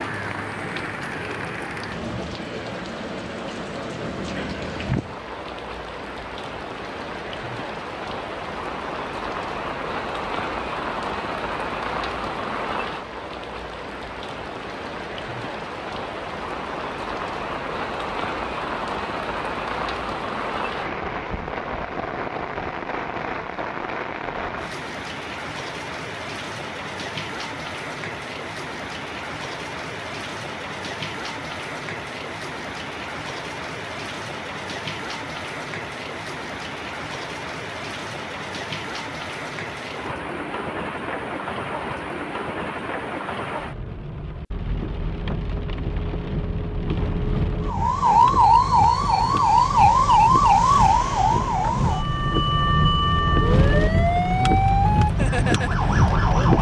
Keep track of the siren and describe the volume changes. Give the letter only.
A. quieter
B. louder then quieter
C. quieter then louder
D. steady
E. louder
A.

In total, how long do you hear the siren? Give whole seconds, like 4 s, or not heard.
9 s.